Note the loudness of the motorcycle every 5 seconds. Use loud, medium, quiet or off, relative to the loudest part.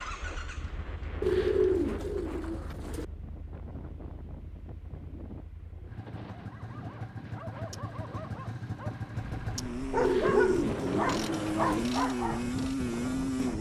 quiet, medium, loud.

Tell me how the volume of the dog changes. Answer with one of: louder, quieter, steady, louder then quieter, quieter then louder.
louder.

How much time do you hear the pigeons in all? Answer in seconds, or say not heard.
4 s.